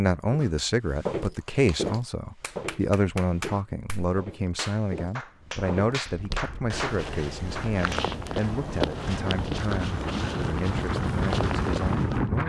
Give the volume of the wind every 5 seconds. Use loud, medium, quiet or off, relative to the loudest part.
off, medium, loud.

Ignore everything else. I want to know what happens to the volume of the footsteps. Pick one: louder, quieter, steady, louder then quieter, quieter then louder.
quieter then louder.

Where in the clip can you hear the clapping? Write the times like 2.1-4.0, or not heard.
1.4-8.1.